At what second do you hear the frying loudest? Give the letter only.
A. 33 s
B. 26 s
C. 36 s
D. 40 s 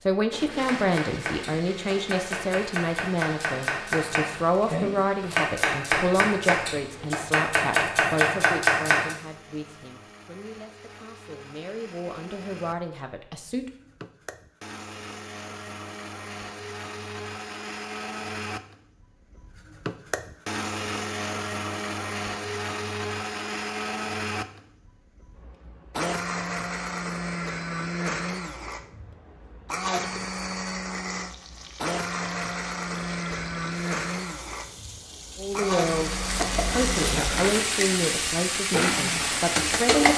D.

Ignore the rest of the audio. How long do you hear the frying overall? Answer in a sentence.
You can hear the frying for 9 seconds altogether.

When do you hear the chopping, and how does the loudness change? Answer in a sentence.
The chopping can be heard from 0.6 to 9.2 s, getting louder.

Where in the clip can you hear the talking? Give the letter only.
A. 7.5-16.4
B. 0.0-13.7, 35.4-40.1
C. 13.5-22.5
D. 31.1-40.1
B.